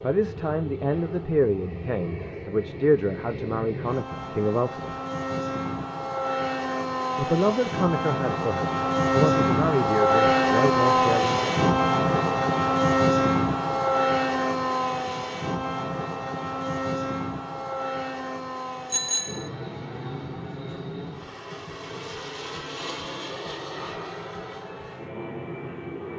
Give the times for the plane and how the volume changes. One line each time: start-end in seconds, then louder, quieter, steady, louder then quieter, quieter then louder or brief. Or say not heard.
0.0-26.1 louder then quieter.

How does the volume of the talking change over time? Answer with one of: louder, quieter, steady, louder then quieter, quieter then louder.
steady.